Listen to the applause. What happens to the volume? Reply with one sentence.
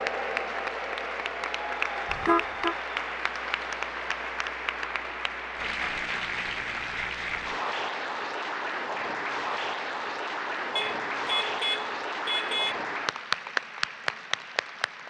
The volume of the applause stays about the same.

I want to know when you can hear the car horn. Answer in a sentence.
You can hear the car horn from 2.1 to 2.8 s and from 10.8 to 12.8 s.